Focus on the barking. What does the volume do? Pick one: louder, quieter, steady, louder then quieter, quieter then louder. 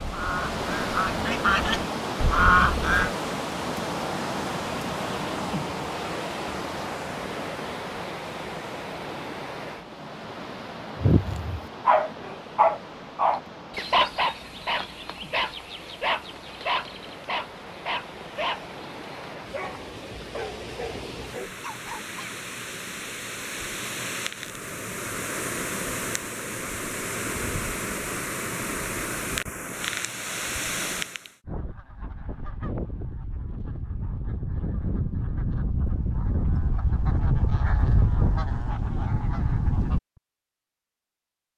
quieter.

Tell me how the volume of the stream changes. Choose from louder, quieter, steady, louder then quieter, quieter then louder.
quieter then louder.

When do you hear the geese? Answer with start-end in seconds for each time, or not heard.
0.0-3.1, 31.4-40.0.